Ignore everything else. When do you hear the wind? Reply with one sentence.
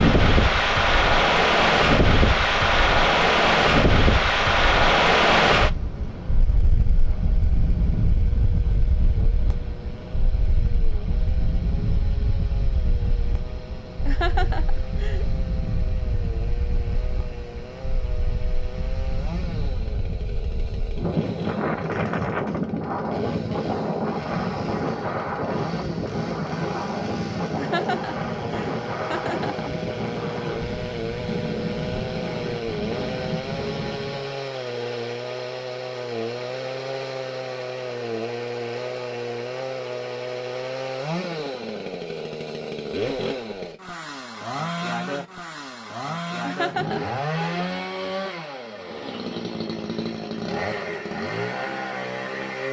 You can hear the wind from 0.0 to 34.4 s.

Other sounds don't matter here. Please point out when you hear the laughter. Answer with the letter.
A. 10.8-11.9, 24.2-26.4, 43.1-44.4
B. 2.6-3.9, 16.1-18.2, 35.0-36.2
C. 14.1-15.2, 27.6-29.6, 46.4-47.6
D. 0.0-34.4
C.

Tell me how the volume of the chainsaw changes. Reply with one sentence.
The loudness of the chainsaw goes up.